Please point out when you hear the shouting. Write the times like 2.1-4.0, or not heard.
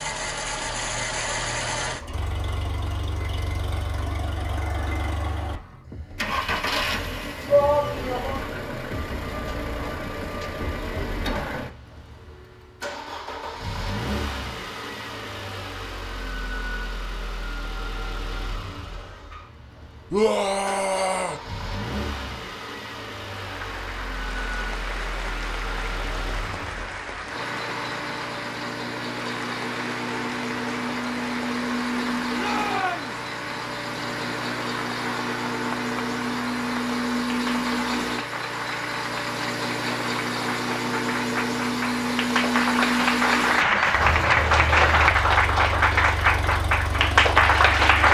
7.5-8.4, 20.1-21.4, 32.4-33.2.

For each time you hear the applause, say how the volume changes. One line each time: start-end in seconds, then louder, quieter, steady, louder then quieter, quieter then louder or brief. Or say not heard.
23.4-48.0 louder.